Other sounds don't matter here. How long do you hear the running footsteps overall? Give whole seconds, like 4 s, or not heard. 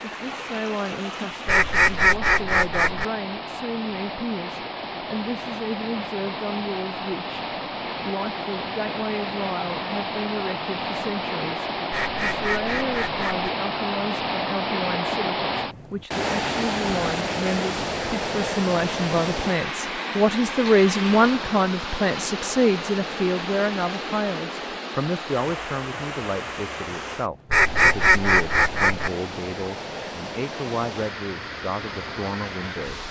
not heard.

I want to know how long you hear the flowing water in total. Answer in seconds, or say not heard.
33 s.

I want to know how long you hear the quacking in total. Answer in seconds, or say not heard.
5 s.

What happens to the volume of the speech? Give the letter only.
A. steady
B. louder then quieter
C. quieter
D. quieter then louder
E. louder
B.